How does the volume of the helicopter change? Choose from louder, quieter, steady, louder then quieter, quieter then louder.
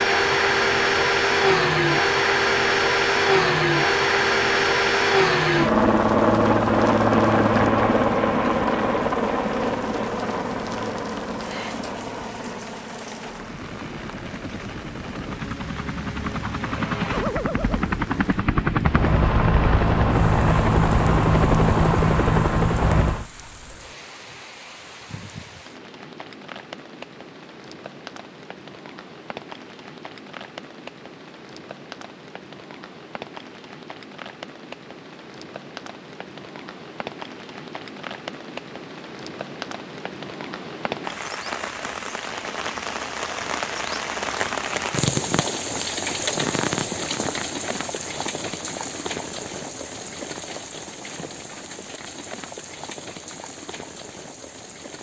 quieter then louder.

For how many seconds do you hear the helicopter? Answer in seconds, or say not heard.
23 s.